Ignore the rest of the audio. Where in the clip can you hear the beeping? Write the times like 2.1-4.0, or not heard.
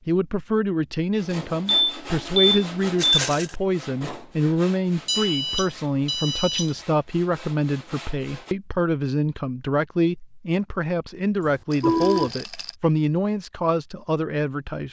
1.6-3.2, 5.0-6.8, 11.4-12.3.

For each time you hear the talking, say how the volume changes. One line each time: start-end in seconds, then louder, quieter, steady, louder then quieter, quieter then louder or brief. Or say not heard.
0.1-14.8 steady.